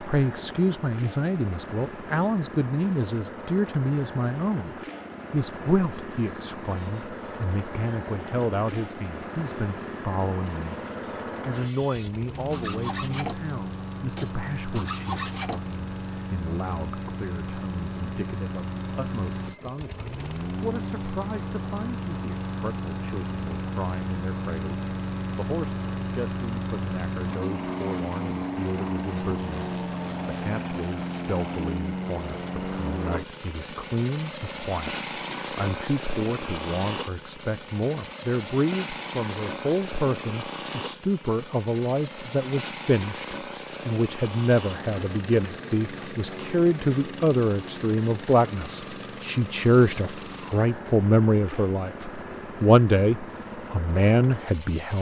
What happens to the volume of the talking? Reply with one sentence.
The loudness of the talking goes down, then up.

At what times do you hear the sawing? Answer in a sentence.
The sawing can be heard from 5.9 to 16.0 s.